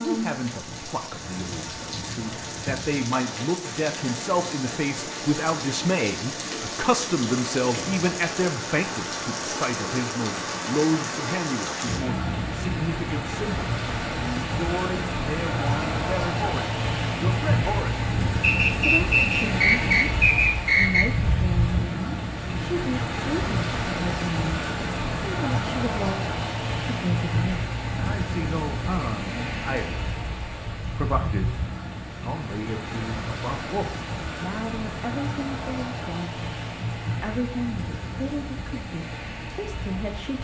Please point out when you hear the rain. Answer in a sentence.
You can hear the rain from 0.0 to 40.3 s.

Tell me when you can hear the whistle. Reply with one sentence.
You can hear the whistle from 18.4 to 21.1 s.